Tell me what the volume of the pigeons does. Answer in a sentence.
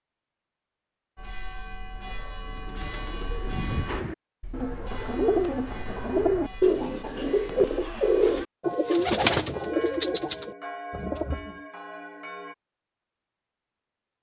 The volume of the pigeons goes up.